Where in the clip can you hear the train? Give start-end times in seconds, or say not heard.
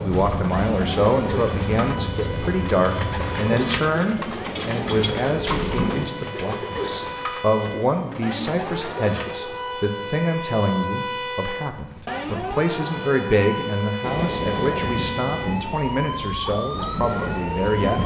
0.0-6.0, 14.0-18.0.